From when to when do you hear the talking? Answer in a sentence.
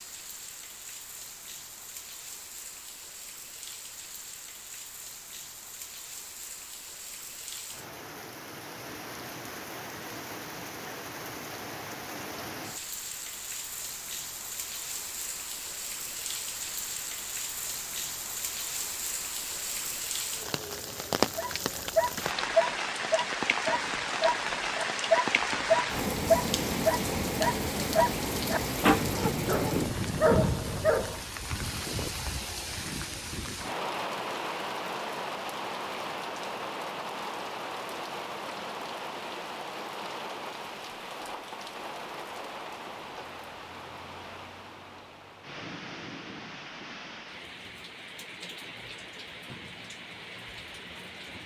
You can't hear the talking here.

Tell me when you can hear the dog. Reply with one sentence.
The dog can be heard from 21.4 to 31.2 s.